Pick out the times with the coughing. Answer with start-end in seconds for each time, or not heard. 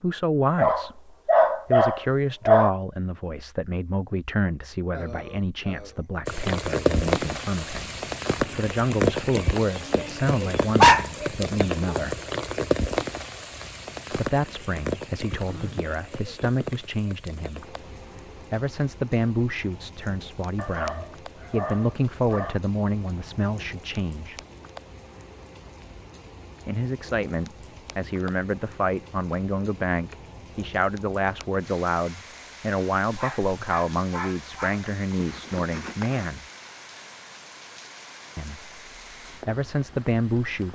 4.9-6.1, 15.3-15.9, 34.8-36.3.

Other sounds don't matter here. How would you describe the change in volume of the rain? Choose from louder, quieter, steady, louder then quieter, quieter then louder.
quieter.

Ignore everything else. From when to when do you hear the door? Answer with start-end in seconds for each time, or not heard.
not heard.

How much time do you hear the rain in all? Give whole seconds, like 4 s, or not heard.
34 s.